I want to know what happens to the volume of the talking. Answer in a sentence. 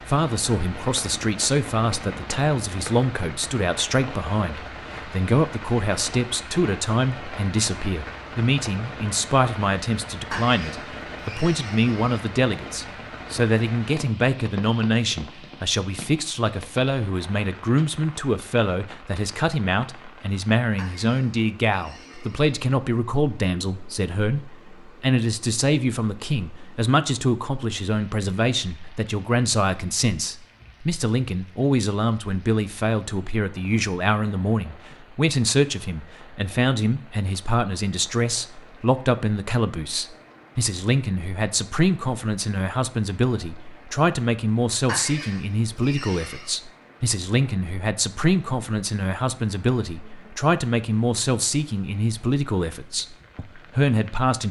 The volume of the talking stays about the same.